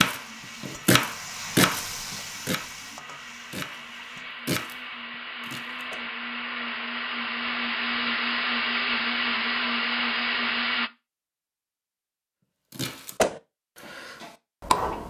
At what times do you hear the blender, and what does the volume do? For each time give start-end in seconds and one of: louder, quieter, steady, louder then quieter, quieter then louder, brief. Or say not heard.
0.1-10.9 louder.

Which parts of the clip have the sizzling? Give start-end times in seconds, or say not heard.
0.1-4.3.